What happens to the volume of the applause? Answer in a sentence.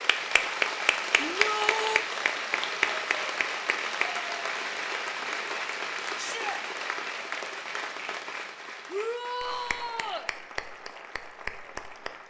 The volume of the applause goes down.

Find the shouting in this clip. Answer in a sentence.
The shouting can be heard from 1.1 to 2.0 s, from 6.2 to 6.6 s and from 8.8 to 10.3 s.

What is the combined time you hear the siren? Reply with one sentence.
You can't hear the siren here.